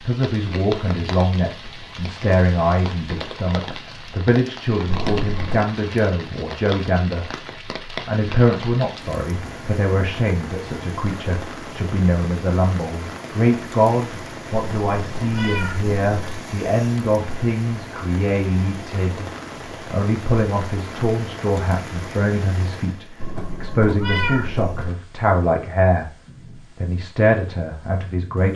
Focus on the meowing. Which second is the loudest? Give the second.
24 s.